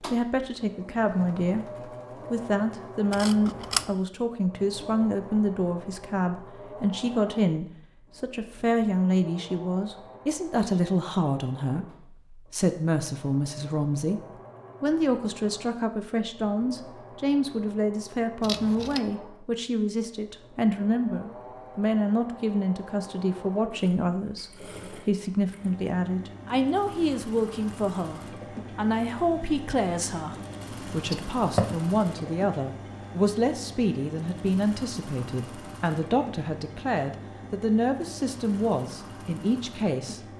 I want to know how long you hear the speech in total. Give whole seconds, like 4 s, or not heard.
40 s.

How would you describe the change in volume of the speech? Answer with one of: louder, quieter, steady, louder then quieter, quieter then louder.
steady.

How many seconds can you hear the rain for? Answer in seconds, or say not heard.
not heard.